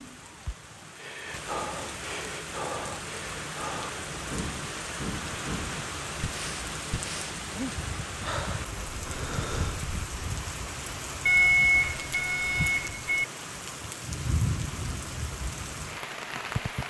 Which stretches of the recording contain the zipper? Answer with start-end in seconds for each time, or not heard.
not heard.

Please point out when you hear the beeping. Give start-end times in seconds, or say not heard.
11.2-13.2.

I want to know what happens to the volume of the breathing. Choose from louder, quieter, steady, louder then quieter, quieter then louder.
steady.